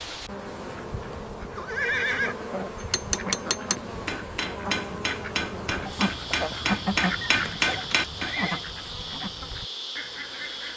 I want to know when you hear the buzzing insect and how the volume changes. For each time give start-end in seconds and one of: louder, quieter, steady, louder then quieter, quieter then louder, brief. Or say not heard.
0.0-10.7 steady.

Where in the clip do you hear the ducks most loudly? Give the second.
7 s.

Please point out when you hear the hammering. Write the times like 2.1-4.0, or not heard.
2.8-8.4.